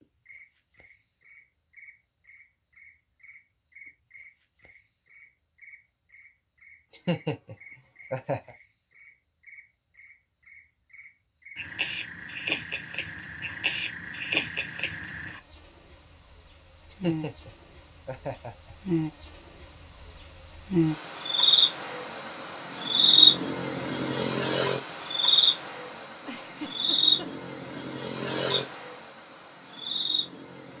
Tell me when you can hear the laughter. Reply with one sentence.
The laughter can be heard from 6.9 to 8.5 s, from 16.9 to 18.8 s and from 26.2 to 27.9 s.